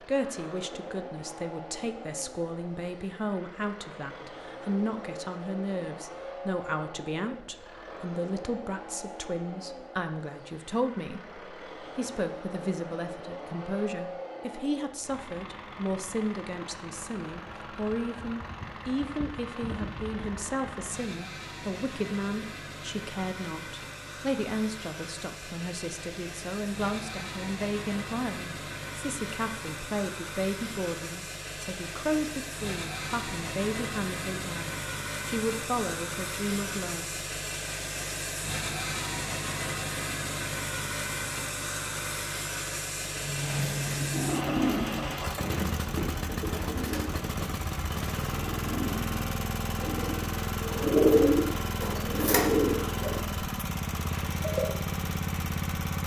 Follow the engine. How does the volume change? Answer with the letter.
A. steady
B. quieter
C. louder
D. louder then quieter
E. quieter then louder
C.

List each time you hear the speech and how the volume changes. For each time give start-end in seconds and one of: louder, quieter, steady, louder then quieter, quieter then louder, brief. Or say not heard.
0.1-37.1 steady.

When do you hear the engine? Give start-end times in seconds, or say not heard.
0.0-56.0.